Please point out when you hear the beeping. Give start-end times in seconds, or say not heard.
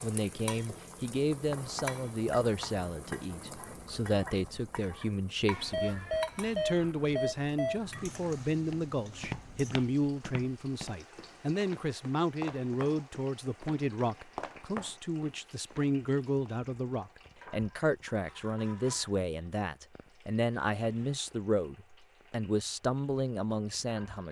5.5-8.2.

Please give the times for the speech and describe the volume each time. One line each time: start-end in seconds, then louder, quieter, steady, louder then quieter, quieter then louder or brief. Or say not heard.
0.0-24.2 steady.